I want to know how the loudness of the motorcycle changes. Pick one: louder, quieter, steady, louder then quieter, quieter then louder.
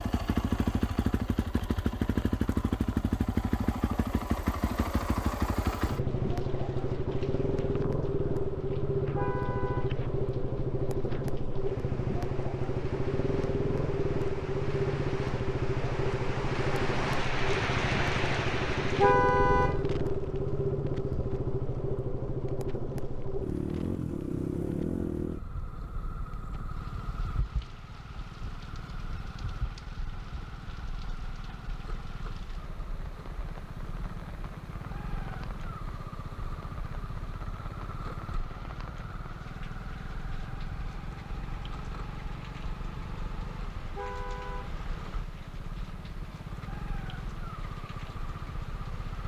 quieter.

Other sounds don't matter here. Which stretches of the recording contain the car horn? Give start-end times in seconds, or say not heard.
9.2-9.9, 18.9-19.8, 44.0-44.8.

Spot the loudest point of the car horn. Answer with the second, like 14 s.
19 s.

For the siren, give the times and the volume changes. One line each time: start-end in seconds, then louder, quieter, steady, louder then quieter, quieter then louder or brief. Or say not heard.
not heard.